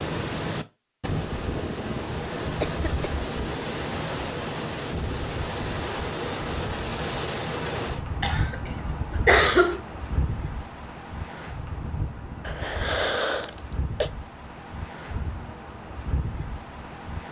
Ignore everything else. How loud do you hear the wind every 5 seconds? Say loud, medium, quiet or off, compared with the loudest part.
loud, loud, medium, medium.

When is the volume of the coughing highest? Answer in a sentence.
The volume of the coughing peaks at 9 seconds.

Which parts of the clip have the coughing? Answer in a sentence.
You can hear the coughing from 2.6 to 3.3 s, from 8.2 to 9.8 s and from 12.4 to 14.1 s.